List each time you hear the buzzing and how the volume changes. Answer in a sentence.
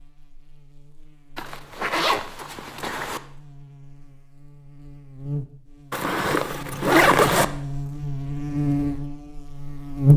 You can hear the buzzing from 0.0 to 10.1 s, getting louder.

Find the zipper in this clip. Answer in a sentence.
You can hear the zipper from 1.4 to 3.2 s and from 5.9 to 7.5 s.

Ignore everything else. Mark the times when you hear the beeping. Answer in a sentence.
You can't hear the beeping here.